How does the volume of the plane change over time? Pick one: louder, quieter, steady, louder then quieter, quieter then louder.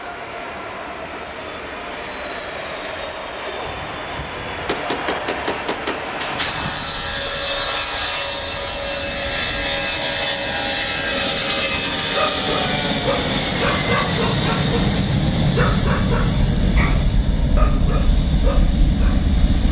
louder.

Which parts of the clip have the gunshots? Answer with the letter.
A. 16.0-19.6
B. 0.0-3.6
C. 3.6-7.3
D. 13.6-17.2
C.